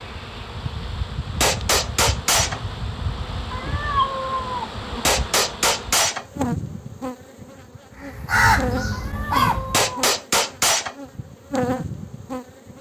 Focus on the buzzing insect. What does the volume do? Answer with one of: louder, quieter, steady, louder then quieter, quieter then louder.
steady.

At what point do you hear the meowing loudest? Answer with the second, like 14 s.
4 s.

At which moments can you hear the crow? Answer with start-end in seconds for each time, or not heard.
8.0-9.9.